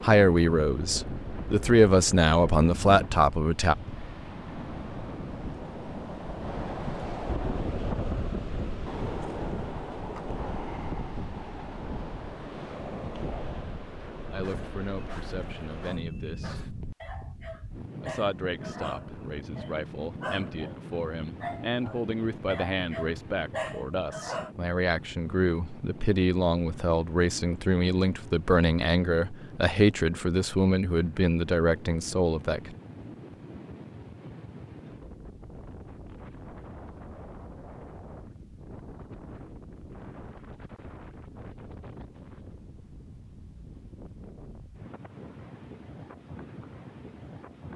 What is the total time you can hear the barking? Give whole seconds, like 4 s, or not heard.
10 s.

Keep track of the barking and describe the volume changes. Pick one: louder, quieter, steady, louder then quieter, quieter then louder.
louder.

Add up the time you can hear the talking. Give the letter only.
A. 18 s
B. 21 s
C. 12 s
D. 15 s
B.